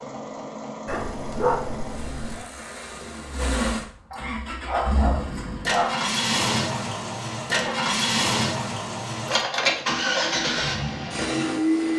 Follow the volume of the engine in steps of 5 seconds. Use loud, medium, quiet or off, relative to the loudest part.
medium, loud, loud.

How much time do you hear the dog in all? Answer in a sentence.
The dog can be heard for 5 seconds in total.